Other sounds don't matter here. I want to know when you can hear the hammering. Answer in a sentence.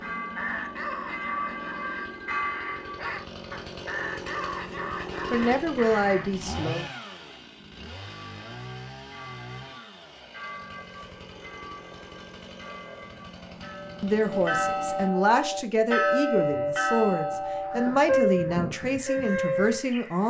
You can't hear the hammering here.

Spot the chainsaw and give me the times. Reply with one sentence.
The chainsaw can be heard from 0.0 to 15.1 s.